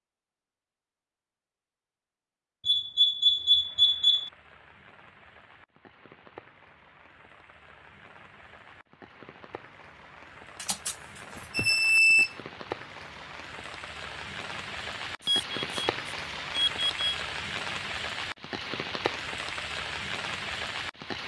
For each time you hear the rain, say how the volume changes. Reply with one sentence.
The rain can be heard from 3.5 to 21.2 s, getting louder.